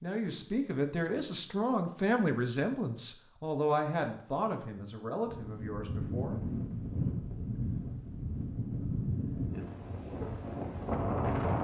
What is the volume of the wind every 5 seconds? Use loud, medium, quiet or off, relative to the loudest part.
off, loud, loud.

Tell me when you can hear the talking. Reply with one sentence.
The talking can be heard from 0.0 to 6.4 s.